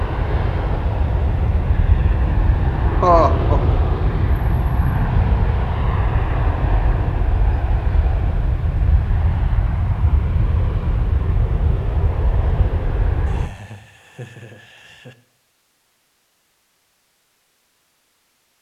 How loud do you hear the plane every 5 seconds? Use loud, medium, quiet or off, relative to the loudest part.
loud, loud, loud, off.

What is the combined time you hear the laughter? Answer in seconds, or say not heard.
3 s.